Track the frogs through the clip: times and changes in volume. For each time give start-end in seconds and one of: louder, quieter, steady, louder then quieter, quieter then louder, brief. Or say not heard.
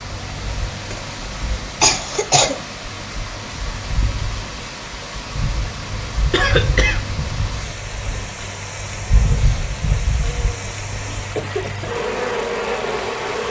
not heard.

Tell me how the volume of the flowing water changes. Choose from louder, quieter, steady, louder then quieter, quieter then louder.
steady.